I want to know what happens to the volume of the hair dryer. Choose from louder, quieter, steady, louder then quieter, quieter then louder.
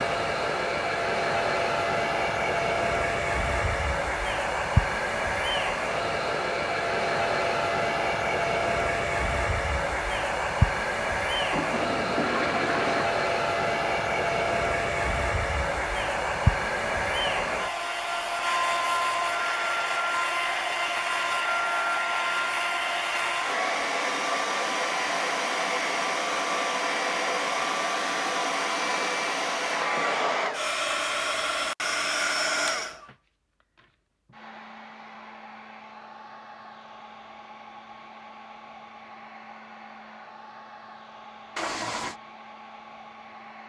quieter.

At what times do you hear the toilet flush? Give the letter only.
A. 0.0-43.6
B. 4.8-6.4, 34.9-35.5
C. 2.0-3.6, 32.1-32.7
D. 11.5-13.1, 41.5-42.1
D.